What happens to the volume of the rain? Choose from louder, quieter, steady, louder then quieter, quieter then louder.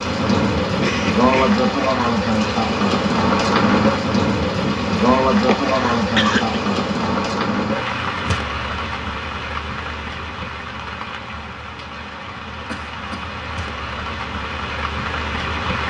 quieter.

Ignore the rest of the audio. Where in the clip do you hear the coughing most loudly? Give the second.
6 s.